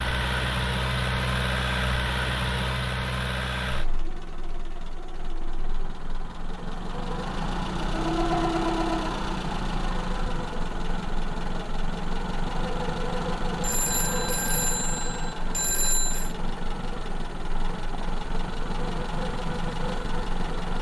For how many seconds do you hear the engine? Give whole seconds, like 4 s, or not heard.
21 s.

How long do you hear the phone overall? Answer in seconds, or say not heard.
3 s.